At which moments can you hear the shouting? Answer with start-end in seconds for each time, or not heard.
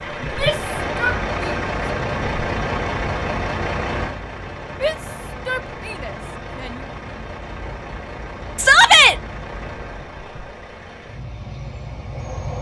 0.2-1.6, 4.8-6.8, 8.6-9.2.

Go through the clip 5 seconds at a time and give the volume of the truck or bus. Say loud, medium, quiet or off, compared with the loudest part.
loud, medium, medium.